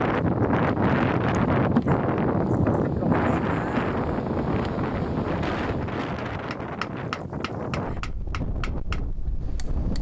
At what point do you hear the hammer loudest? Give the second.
7 s.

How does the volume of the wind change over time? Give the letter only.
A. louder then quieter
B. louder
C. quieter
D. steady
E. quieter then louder
C.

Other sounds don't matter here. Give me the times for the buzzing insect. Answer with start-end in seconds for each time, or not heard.
0.1-6.0.